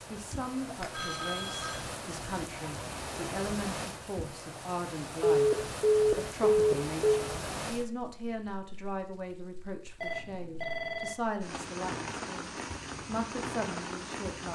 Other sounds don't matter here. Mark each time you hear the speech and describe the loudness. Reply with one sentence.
You can hear the speech from 0.1 to 14.5 s, at a steady volume.